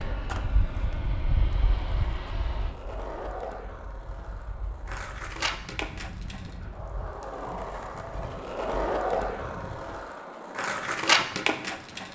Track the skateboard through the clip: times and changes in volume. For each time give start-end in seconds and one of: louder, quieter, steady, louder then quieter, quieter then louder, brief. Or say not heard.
0.0-12.1 louder.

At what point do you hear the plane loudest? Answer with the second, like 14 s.
2 s.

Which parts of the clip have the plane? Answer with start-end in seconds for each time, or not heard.
0.0-10.1.